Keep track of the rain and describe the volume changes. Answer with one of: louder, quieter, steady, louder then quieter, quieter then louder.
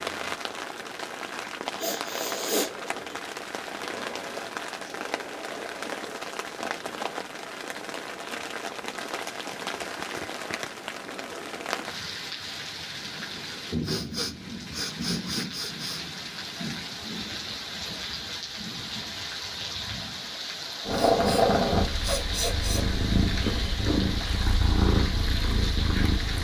steady.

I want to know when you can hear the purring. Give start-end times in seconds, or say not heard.
20.8-26.3.